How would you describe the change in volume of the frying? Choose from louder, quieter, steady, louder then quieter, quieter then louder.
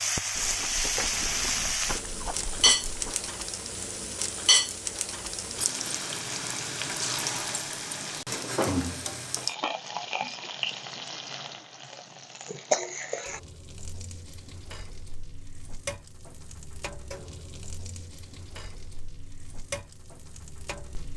quieter.